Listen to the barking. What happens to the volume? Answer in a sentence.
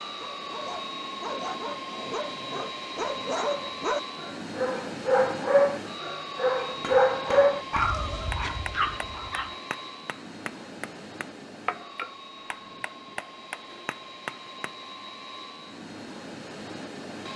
The loudness of the barking goes up.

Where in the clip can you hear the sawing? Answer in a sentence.
The sawing can't be heard in this clip.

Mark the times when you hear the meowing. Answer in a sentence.
You can't hear the meowing here.